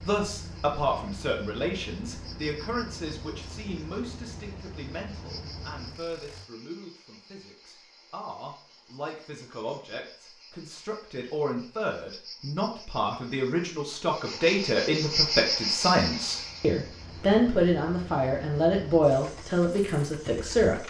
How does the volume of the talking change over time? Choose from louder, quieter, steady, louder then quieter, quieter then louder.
quieter then louder.